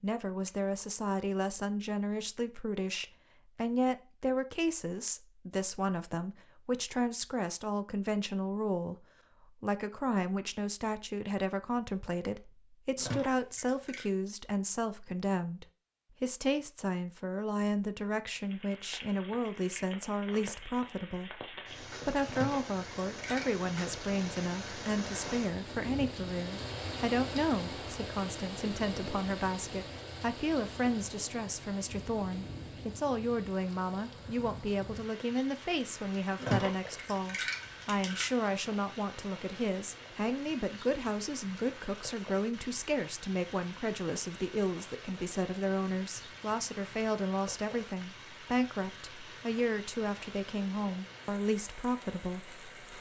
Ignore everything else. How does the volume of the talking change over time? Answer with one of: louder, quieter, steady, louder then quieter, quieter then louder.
steady.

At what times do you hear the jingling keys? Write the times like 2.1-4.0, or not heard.
12.9-14.1, 22.2-23.6, 36.4-38.3.